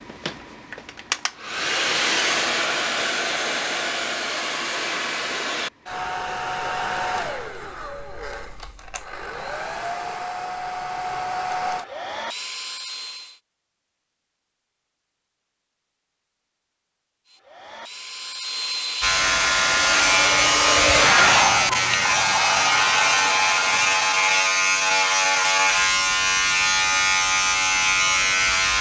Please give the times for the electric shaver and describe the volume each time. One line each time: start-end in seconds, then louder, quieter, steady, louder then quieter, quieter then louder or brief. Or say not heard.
19.0-28.7 steady.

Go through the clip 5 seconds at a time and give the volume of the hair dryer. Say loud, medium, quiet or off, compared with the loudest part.
loud, medium, medium, medium, loud, off.